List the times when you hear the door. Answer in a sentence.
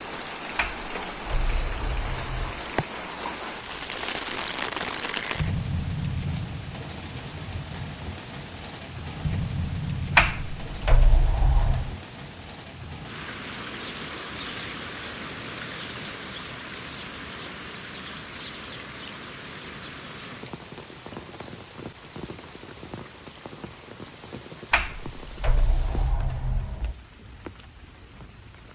You can hear the door from 0.6 to 2.7 s, from 10.2 to 11.9 s and from 24.7 to 26.9 s.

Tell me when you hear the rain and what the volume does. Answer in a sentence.
The rain can be heard from 0.0 to 28.7 s, getting quieter.